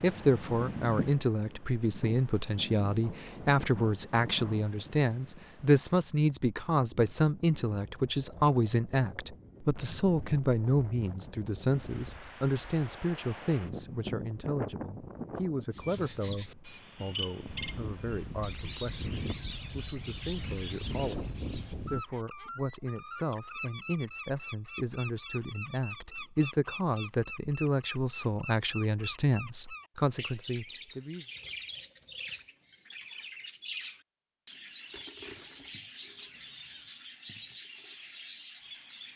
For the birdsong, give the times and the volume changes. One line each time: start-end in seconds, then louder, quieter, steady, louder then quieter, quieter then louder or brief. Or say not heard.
15.7-39.1 steady.